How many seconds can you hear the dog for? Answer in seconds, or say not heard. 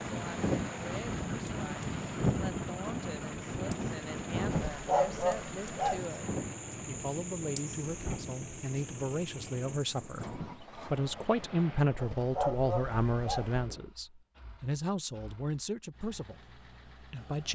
3 s.